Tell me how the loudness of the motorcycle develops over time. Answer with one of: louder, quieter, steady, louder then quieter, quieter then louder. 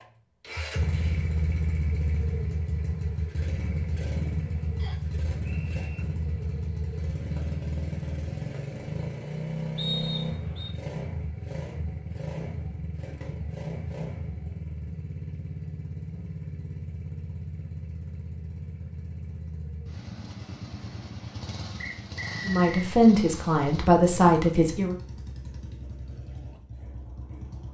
quieter.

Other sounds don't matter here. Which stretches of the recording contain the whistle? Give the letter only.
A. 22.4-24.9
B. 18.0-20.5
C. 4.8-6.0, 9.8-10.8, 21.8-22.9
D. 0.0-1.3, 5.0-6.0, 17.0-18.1
C.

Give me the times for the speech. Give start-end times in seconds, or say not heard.
22.4-24.9.